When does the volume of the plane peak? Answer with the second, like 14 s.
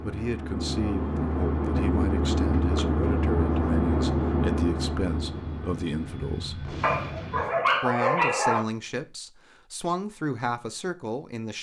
4 s.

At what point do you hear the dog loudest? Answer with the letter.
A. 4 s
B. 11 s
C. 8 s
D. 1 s
C.